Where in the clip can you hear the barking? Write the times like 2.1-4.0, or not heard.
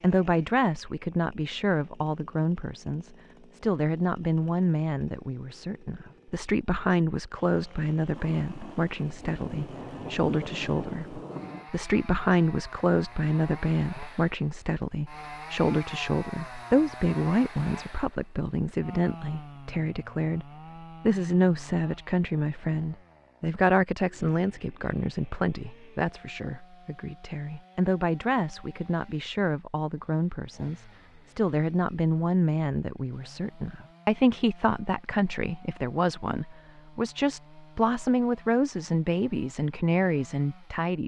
not heard.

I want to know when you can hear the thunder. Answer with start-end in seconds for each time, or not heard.
8.2-11.7.